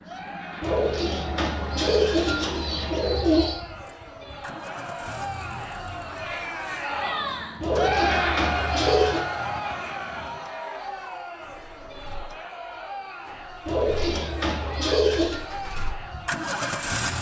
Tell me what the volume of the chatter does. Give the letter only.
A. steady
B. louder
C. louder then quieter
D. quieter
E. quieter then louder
C.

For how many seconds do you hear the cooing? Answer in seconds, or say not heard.
6 s.